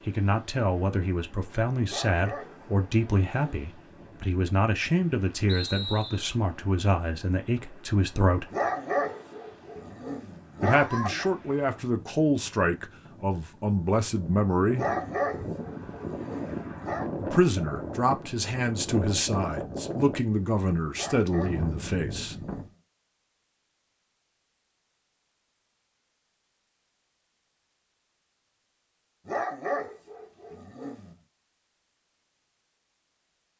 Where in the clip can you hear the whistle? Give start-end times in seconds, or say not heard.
5.5-6.2.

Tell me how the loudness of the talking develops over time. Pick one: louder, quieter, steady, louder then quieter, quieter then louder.
steady.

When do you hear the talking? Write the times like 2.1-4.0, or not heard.
0.1-8.5, 10.6-14.8, 17.2-22.4.